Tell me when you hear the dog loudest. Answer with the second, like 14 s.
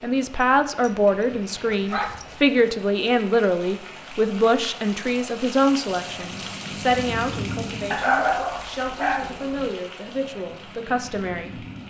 8 s.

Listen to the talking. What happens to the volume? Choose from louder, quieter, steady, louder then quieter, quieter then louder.
quieter.